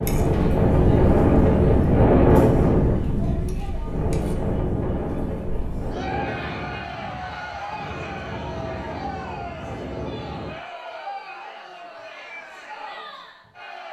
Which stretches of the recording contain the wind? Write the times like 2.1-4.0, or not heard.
0.0-10.6.